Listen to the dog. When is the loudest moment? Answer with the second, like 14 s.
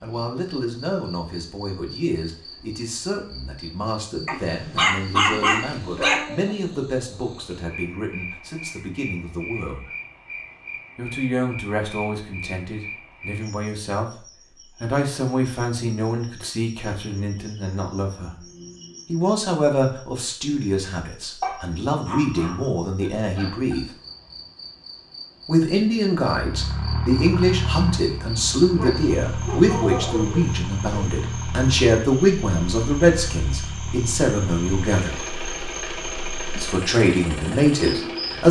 5 s.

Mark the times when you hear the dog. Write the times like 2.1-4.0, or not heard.
4.2-6.2, 21.4-23.8, 28.8-31.1.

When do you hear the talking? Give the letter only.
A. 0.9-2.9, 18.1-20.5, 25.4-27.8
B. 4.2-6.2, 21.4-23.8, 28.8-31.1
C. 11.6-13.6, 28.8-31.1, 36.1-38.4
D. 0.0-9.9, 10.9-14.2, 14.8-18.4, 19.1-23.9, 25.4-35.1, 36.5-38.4
D.